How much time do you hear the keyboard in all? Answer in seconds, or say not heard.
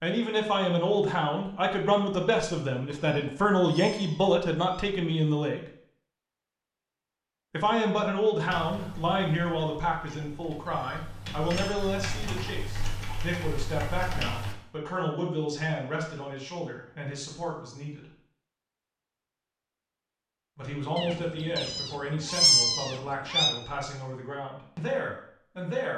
6 s.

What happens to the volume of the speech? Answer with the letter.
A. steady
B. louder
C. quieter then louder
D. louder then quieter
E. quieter
E.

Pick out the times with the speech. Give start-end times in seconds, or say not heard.
0.0-5.7, 7.5-18.1, 20.6-25.9.